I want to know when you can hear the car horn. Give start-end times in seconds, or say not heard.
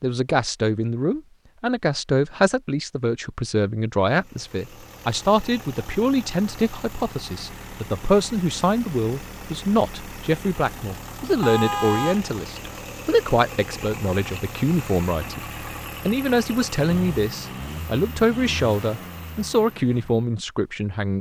11.4-12.2.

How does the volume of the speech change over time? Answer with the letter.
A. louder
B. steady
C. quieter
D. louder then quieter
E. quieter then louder
B.